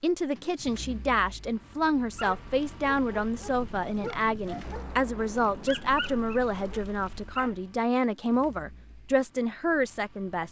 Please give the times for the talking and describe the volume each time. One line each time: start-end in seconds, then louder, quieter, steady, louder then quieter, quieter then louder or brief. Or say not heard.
0.0-10.4 steady.